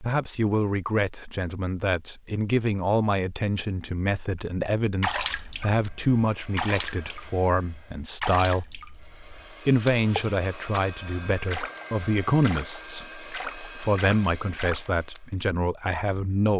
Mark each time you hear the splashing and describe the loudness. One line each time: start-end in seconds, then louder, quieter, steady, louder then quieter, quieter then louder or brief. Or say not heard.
5.0-15.2 steady.